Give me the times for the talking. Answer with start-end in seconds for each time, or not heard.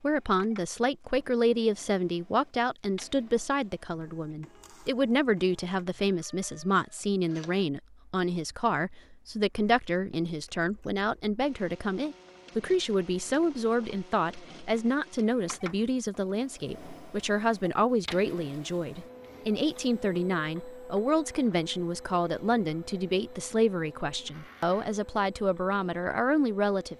0.0-26.9.